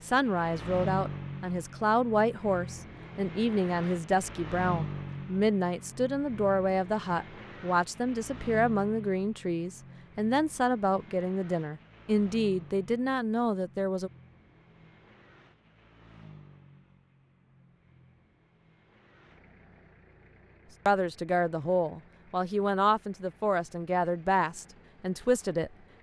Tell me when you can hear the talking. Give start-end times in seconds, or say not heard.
0.0-14.1, 20.9-25.7.